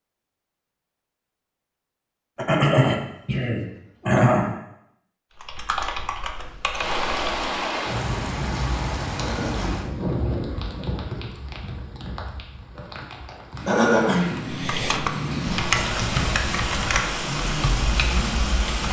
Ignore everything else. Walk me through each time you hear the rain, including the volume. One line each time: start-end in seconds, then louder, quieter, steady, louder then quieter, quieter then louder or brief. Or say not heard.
6.7-18.8 quieter then louder.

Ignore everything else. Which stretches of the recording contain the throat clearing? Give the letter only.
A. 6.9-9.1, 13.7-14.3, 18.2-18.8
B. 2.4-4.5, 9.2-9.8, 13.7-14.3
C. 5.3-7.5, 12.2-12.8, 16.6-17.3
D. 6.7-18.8
B.